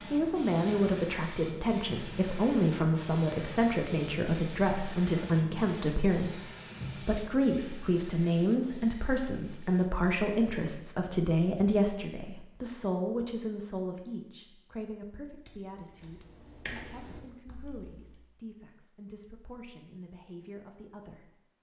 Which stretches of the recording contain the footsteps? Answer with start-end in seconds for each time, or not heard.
not heard.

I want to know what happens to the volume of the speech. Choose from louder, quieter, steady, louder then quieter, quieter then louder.
quieter.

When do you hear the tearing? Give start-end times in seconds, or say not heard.
not heard.